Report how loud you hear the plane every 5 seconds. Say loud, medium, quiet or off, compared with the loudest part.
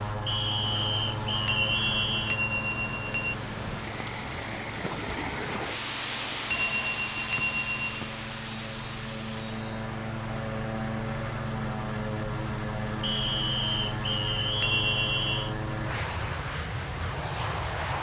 loud, medium, loud, loud.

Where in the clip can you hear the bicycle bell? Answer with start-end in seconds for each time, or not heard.
1.4-3.4, 6.5-8.0, 14.6-15.4.